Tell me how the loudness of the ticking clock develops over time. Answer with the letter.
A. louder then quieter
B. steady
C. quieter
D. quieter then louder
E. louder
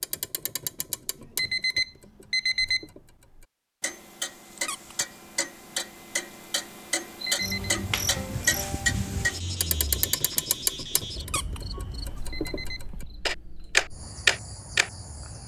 E.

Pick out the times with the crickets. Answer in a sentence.
You can hear the crickets from 7.2 to 15.4 s.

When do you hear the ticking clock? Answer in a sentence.
The ticking clock can be heard from 0.0 to 14.9 s.